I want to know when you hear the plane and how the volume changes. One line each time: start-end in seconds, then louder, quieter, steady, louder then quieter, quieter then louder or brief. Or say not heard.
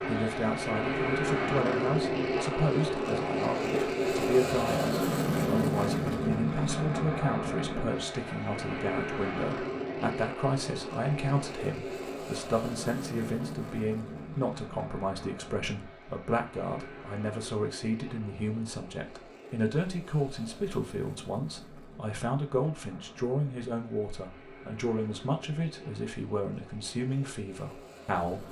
0.0-28.4 quieter.